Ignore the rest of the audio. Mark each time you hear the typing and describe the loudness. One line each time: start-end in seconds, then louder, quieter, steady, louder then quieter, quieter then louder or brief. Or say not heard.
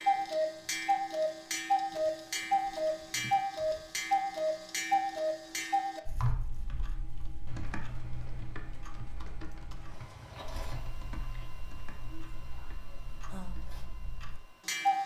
6.2-13.7 quieter.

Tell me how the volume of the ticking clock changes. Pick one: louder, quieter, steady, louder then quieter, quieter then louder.
quieter then louder.